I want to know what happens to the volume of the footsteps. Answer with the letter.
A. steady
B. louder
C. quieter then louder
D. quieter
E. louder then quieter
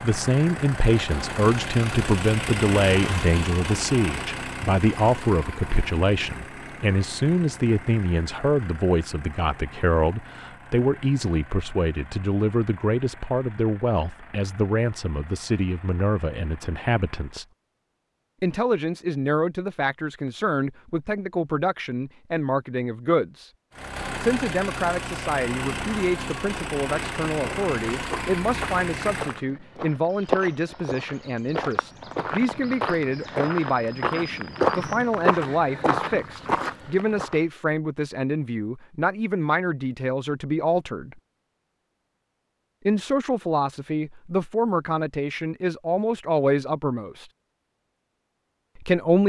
B.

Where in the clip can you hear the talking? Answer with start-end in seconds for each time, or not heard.
0.0-17.4, 18.4-23.5, 24.2-41.2, 42.9-47.2, 48.8-49.2.